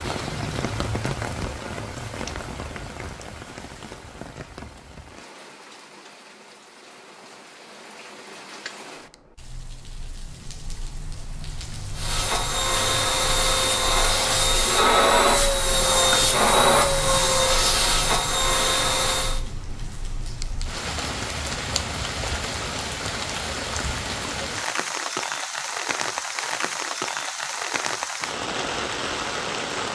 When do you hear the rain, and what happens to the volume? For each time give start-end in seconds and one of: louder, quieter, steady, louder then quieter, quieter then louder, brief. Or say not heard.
0.0-29.9 quieter then louder.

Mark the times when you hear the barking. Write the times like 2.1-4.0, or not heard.
not heard.